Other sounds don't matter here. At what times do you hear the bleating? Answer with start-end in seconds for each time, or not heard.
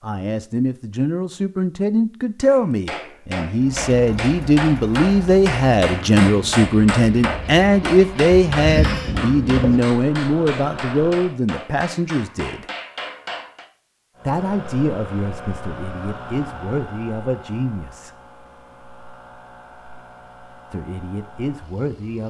8.4-9.8.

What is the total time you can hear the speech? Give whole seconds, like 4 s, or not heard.
18 s.